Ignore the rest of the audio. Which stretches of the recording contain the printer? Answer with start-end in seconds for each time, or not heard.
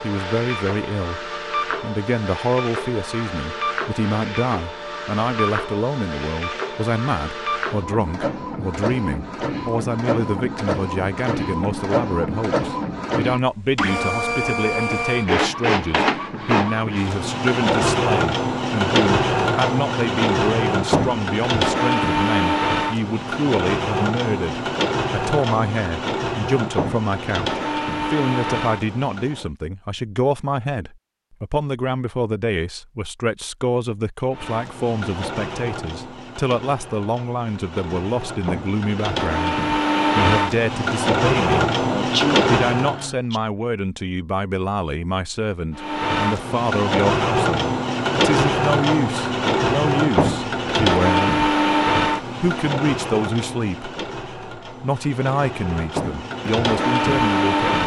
0.0-29.5, 34.3-43.1, 45.8-57.8.